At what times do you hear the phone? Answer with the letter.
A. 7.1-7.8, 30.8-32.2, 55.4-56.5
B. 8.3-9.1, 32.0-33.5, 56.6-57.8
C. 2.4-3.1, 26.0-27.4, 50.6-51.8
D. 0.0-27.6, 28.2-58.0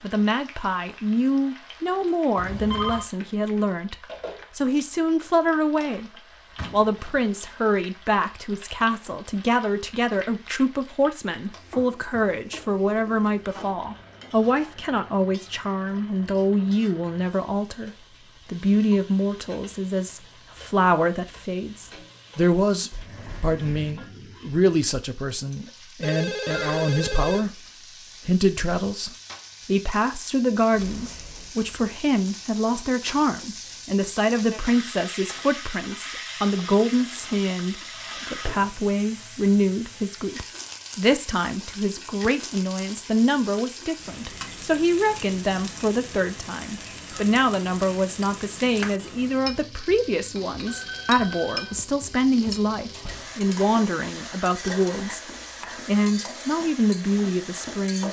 C.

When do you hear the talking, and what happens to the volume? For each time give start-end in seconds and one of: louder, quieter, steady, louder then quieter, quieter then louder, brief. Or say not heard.
0.0-27.6 steady
28.2-58.0 steady.